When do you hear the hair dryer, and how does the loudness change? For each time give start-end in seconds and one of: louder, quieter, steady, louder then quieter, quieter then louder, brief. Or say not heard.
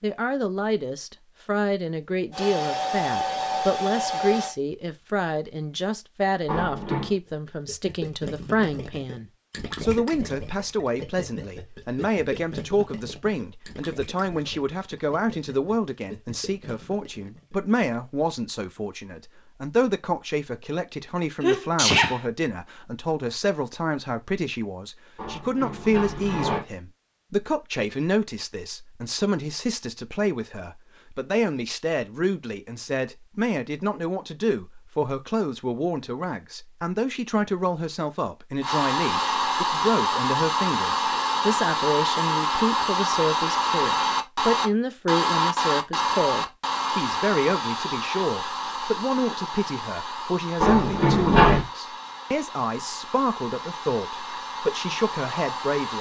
2.3-4.5 brief
38.6-55.9 quieter.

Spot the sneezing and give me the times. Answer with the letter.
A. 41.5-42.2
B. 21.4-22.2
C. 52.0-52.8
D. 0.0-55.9
B.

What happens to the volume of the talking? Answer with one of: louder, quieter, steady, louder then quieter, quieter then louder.
steady.